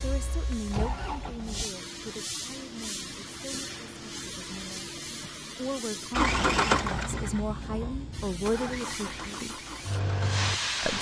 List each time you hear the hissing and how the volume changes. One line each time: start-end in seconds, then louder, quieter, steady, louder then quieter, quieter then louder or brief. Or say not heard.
0.0-6.2 louder
8.1-10.9 brief.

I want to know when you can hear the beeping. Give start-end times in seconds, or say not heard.
not heard.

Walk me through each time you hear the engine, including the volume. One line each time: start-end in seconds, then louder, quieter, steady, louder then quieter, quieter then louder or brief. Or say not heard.
0.0-1.7 brief
6.1-10.9 quieter.